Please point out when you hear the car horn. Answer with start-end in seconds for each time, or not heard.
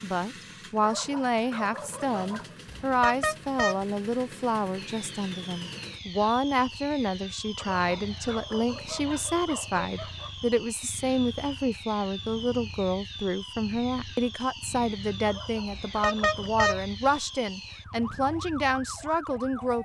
2.8-3.9, 15.7-16.9.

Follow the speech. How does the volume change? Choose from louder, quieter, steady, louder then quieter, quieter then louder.
steady.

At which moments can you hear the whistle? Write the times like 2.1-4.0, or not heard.
not heard.